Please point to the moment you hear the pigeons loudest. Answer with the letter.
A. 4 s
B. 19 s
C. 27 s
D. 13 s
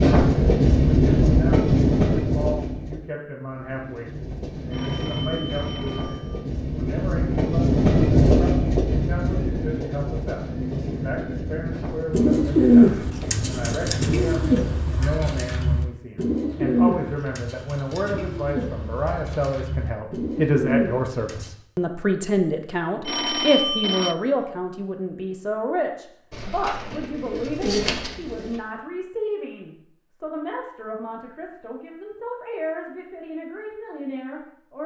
D.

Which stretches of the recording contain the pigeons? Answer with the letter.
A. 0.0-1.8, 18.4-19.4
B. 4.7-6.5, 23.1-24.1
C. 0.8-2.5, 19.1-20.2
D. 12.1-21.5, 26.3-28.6
D.